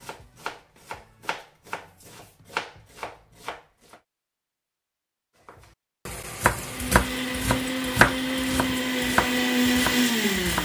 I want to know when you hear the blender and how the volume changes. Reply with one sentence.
The blender can be heard from 6.5 to 10.6 s, getting louder.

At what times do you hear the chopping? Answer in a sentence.
You can hear the chopping from 0.0 to 4.0 s and from 5.5 to 10.6 s.